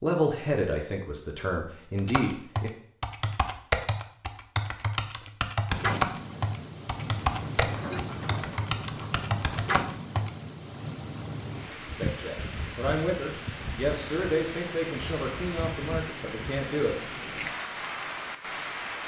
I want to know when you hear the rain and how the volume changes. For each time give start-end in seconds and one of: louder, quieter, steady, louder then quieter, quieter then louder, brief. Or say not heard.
5.7-19.0 steady.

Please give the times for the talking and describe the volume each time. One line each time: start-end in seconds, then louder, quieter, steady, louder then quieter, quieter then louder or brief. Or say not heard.
0.0-2.7 brief
11.9-16.9 quieter.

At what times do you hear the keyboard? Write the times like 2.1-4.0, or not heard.
1.9-10.3.